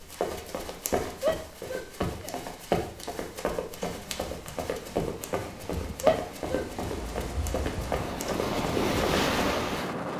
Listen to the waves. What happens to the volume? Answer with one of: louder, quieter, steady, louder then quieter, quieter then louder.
louder.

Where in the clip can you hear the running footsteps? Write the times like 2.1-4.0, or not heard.
0.0-9.4.